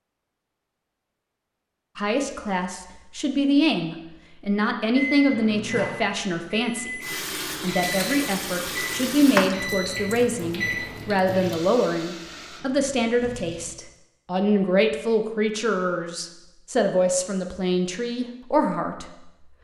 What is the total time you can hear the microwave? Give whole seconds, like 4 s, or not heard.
6 s.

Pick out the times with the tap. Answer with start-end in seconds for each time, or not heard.
7.0-13.7.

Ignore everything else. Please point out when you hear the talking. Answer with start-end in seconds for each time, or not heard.
1.9-19.1.